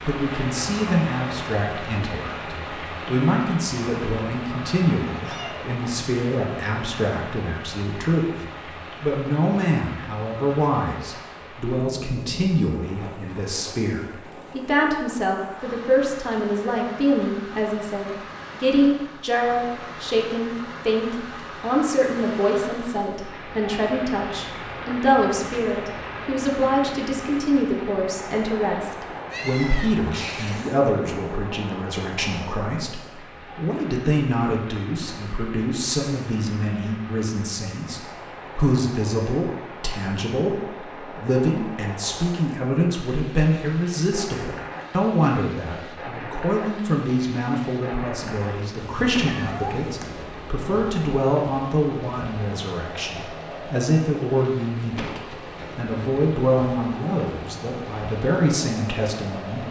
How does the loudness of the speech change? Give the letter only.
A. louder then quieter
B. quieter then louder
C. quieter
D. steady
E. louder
D.